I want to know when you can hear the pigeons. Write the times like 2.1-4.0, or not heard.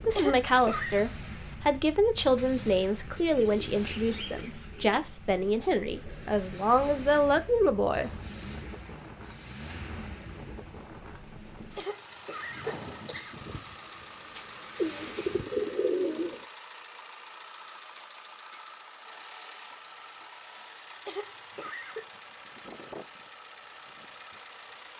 3.1-5.0, 14.8-16.4.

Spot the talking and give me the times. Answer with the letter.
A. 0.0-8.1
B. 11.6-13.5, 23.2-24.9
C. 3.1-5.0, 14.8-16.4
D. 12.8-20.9
A.